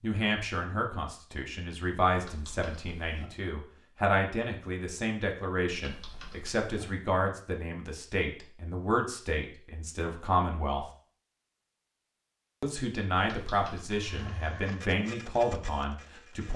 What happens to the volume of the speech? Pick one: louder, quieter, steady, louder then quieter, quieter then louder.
steady.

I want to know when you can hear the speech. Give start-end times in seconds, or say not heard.
0.0-10.8, 12.6-16.5.